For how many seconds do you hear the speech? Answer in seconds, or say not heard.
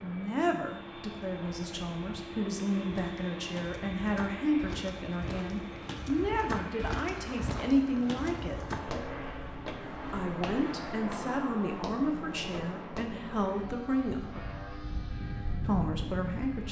14 s.